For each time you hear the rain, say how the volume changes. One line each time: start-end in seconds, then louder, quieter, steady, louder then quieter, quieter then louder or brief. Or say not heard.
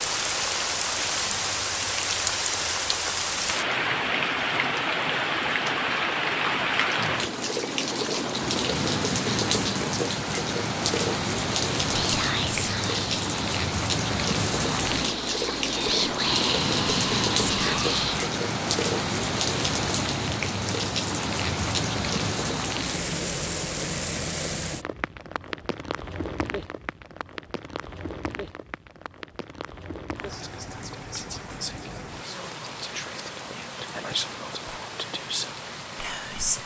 0.0-36.6 quieter.